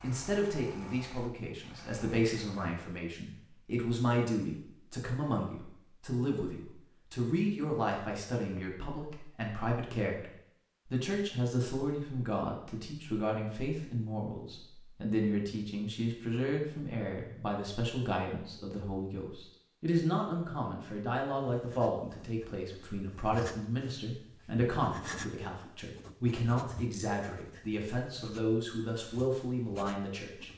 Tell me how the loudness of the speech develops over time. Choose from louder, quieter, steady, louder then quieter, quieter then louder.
steady.